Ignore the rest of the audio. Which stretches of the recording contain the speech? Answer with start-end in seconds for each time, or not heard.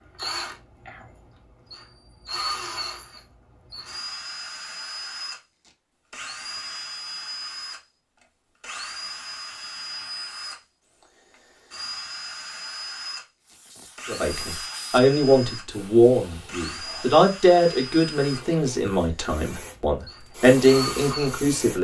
14.1-21.7.